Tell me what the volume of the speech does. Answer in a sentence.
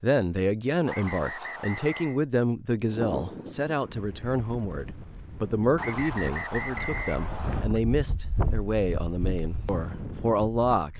The loudness of the speech stays about the same.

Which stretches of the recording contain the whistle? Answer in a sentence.
You can hear the whistle from 0.8 to 2.2 s and from 5.8 to 7.7 s.